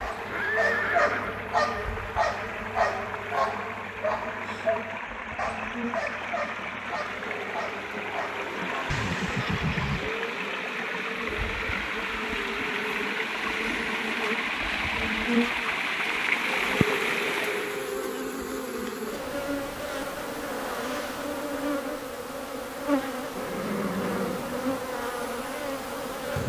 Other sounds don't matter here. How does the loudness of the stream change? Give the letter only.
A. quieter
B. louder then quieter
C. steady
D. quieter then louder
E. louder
E.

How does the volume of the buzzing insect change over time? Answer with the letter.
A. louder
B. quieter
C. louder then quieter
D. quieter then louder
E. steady
A.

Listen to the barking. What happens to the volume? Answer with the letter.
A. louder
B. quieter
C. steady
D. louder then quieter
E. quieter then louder
B.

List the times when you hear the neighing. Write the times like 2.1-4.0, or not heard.
0.2-1.5, 8.9-10.2, 23.4-24.8.